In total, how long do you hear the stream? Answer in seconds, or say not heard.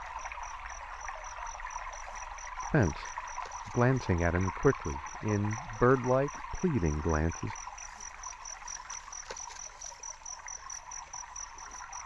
12 s.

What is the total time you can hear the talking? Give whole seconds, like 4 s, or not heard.
5 s.